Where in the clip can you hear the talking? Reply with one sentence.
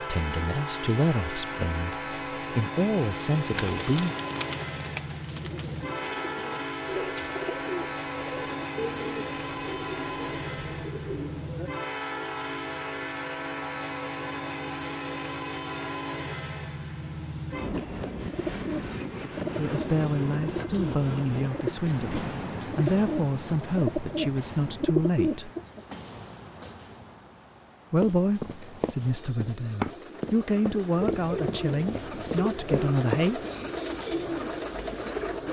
You can hear the talking from 0.0 to 4.2 s, from 19.6 to 25.5 s and from 27.9 to 33.4 s.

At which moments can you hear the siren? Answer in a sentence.
You can't hear the siren here.